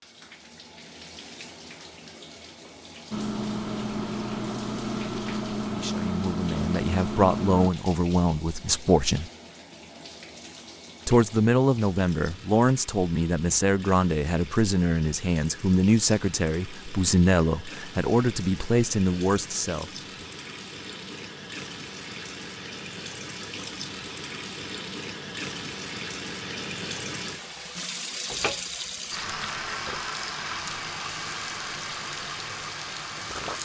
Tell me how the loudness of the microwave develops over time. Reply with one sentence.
The volume of the microwave stays about the same.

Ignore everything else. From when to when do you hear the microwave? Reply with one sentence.
The microwave can be heard from 3.1 to 7.7 s.